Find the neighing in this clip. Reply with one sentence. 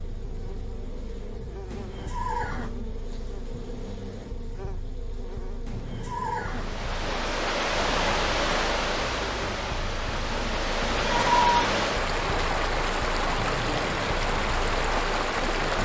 The neighing can be heard from 1.7 to 2.8 s, from 5.7 to 7.5 s and from 10.8 to 11.3 s.